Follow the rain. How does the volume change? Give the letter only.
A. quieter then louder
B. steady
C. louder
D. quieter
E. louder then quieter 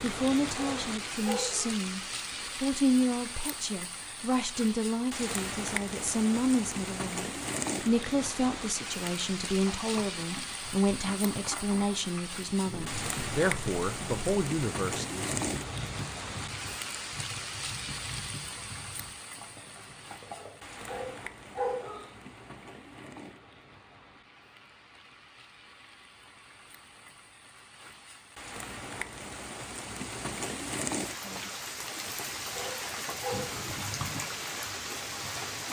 A.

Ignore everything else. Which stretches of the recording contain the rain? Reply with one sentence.
You can hear the rain from 0.0 to 35.6 s.